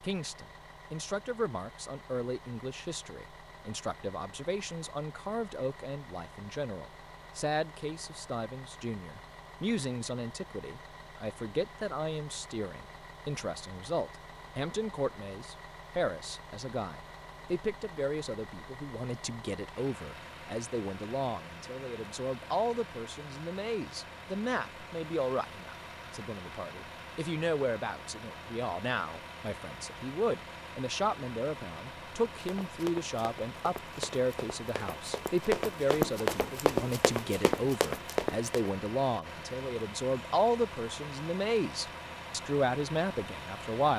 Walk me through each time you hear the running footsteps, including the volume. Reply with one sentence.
The running footsteps can be heard from 32.2 to 38.7 s, getting louder.